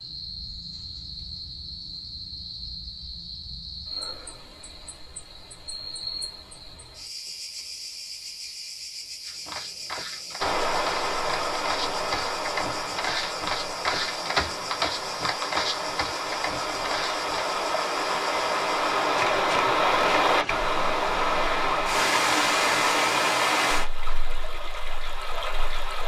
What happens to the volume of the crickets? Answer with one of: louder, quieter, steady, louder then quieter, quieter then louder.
steady.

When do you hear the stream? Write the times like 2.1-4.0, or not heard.
10.3-26.0.